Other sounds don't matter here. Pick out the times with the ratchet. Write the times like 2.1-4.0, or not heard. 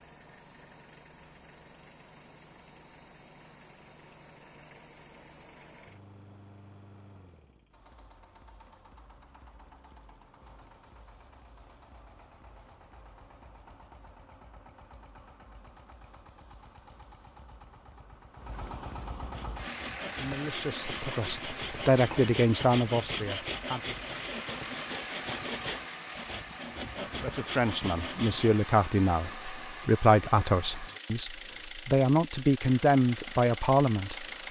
not heard.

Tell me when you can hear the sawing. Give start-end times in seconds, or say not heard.
19.3-28.6.